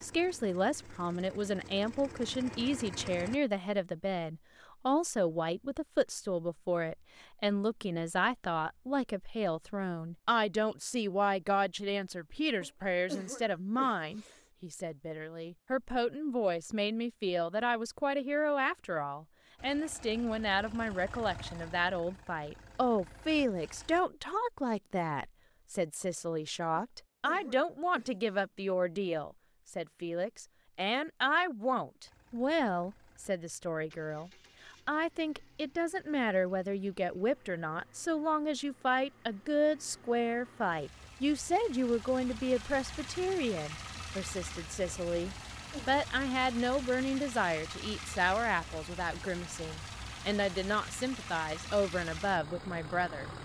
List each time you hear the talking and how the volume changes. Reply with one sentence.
The talking can be heard from 0.0 to 53.3 s, at a steady volume.